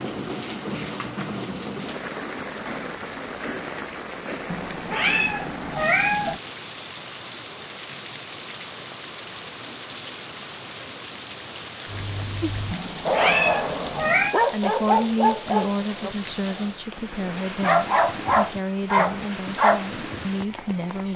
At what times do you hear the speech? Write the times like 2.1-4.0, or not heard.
14.5-21.1.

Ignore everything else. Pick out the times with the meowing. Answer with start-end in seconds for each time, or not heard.
4.5-6.4, 12.7-14.3.